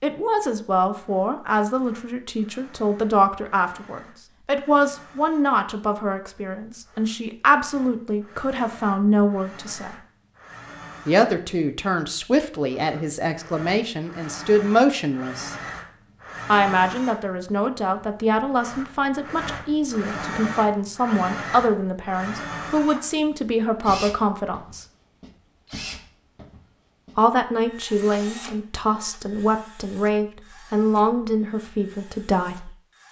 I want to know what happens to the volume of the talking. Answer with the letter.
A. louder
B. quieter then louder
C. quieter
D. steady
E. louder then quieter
D.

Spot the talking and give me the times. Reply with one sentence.
You can hear the talking from 0.0 to 9.9 s, from 11.1 to 15.6 s, from 16.4 to 24.9 s and from 27.1 to 32.7 s.